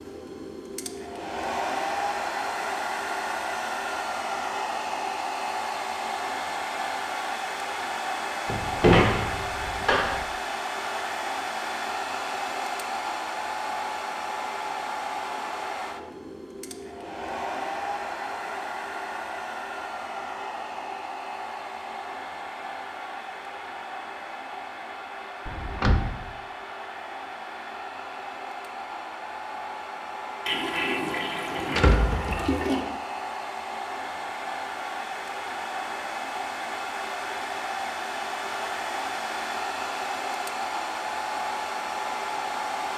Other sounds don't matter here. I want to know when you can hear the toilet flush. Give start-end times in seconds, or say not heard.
30.4-32.9.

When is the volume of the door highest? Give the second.
9 s.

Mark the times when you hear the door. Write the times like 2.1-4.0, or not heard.
8.4-10.2, 25.4-26.1, 31.6-32.5.